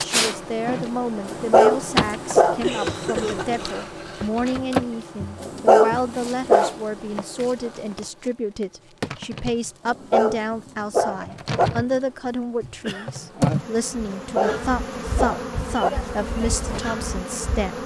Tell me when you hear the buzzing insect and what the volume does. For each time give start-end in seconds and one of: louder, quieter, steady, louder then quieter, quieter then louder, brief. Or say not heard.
0.0-17.8 quieter then louder.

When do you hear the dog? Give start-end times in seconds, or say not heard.
1.2-2.6, 5.4-6.8, 9.8-11.7, 14.2-15.9.